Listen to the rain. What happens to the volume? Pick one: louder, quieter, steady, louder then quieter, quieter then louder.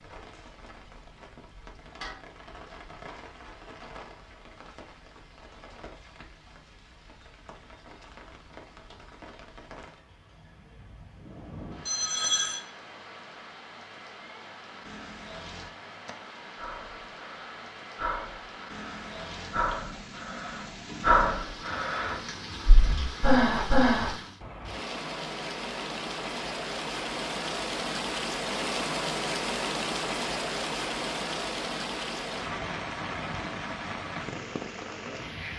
louder.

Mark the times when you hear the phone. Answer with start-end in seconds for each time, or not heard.
11.8-12.7.